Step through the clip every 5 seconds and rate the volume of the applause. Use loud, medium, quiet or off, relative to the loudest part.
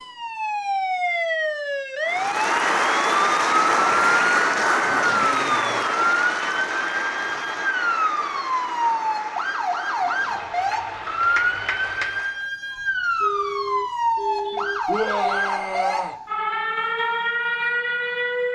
loud, medium, medium, off.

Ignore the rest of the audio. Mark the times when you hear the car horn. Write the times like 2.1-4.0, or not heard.
12.8-15.6.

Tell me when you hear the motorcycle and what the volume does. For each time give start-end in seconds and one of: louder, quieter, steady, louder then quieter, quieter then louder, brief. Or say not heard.
not heard.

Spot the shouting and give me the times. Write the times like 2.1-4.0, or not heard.
14.8-16.1.